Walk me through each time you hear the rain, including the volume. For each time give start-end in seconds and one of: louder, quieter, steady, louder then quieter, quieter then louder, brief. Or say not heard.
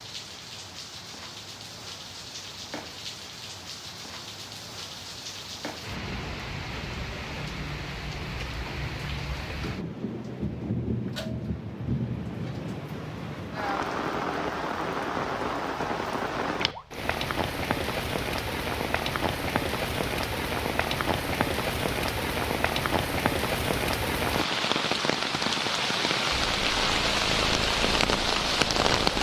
0.0-29.1 louder.